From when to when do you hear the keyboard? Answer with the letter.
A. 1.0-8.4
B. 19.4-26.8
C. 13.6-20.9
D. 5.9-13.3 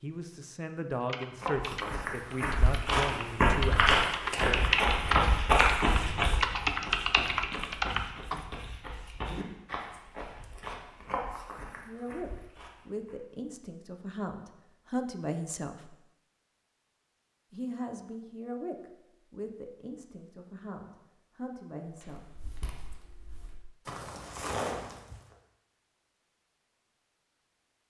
A.